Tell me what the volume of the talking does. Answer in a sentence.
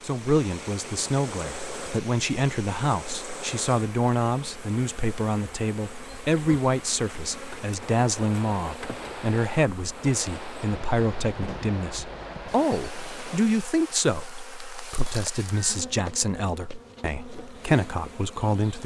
The loudness of the talking stays about the same.